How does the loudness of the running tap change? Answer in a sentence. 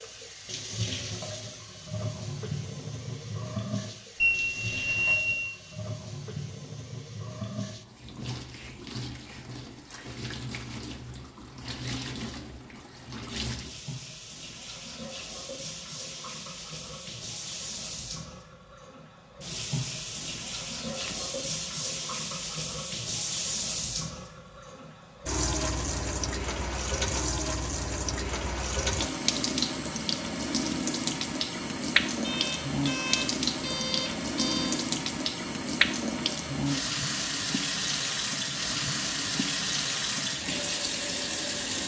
The volume of the running tap goes up.